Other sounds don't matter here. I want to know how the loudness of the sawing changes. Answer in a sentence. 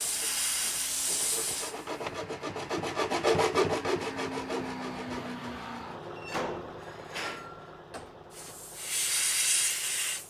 The loudness of the sawing goes up, then down.